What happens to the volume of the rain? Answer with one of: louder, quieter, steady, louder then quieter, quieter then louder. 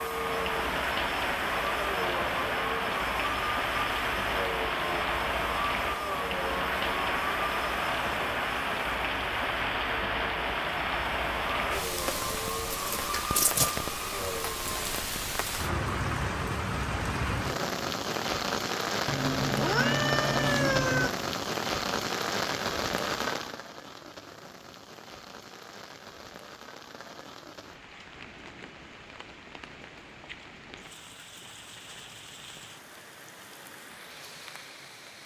quieter.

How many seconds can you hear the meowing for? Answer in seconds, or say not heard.
2 s.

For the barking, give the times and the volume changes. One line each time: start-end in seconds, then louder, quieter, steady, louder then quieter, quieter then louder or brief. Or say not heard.
not heard.